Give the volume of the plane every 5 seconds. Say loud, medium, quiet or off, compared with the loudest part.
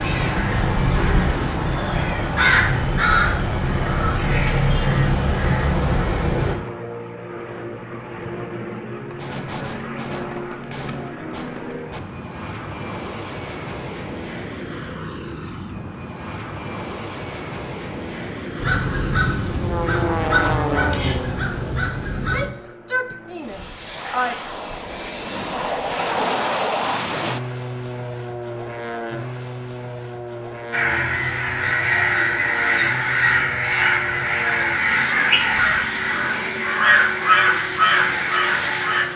medium, medium, medium, medium, loud, loud, medium, medium.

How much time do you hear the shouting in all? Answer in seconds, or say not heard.
2 s.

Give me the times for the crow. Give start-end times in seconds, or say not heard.
0.0-6.5, 18.6-22.5, 30.7-39.0.